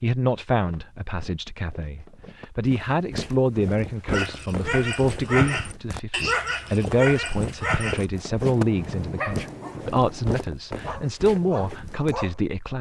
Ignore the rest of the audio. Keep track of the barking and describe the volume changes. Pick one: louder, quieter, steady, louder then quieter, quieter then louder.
quieter.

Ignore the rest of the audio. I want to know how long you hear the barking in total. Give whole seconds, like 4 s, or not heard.
8 s.